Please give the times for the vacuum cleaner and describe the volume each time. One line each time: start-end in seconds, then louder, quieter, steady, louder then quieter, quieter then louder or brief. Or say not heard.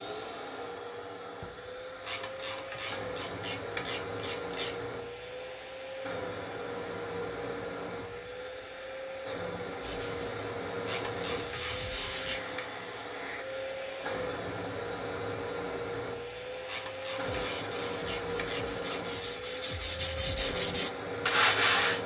0.0-22.0 steady.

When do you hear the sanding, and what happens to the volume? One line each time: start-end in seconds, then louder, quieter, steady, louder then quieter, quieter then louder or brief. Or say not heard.
9.8-12.3 brief
17.2-22.0 louder.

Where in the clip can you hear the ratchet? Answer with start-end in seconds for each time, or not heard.
2.0-4.8, 10.8-12.7, 16.6-19.1.